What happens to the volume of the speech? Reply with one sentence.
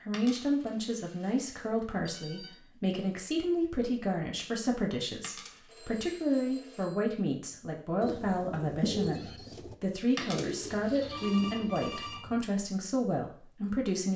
The volume of the speech stays about the same.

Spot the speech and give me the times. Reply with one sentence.
You can hear the speech from 0.0 to 14.1 s.